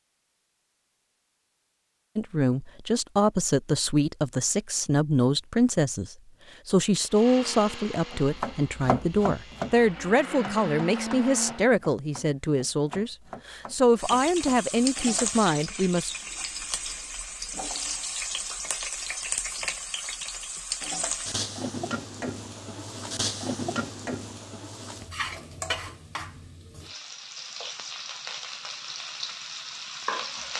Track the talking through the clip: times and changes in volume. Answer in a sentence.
You can hear the talking from 2.1 to 16.1 s, at a steady volume.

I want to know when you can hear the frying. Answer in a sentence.
The frying can be heard from 13.9 to 30.5 s.